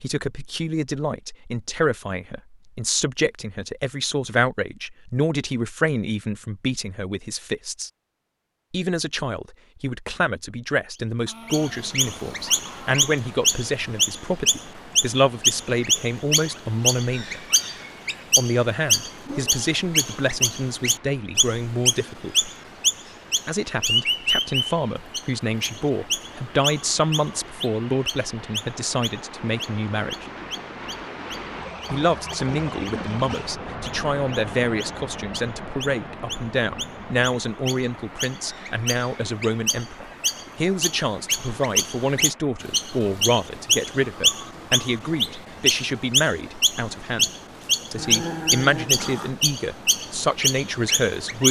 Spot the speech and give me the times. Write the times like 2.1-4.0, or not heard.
0.0-7.9, 8.7-17.4, 18.4-22.5, 23.4-30.2, 31.9-47.3, 47.9-51.4.